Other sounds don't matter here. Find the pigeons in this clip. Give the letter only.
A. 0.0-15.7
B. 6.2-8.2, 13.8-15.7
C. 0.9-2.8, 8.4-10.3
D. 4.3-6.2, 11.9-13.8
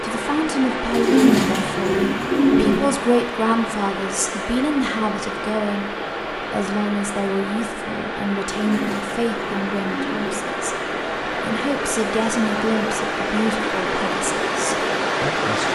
C.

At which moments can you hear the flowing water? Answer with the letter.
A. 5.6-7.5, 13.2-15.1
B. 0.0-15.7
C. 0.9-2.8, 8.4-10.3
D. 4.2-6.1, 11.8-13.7
B.